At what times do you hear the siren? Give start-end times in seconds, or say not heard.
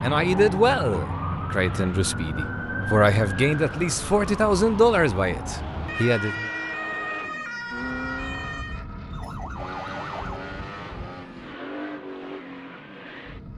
0.0-10.4.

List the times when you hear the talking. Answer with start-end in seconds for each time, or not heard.
0.0-6.5.